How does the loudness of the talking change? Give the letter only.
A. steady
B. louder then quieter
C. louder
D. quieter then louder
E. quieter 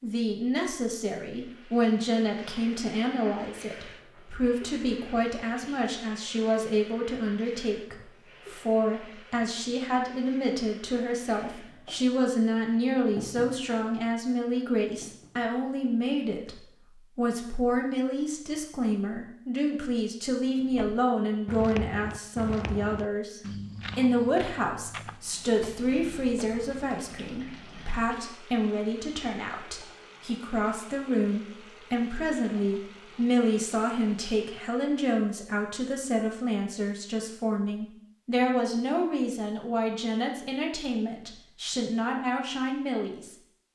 A.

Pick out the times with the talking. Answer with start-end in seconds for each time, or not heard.
0.0-43.4.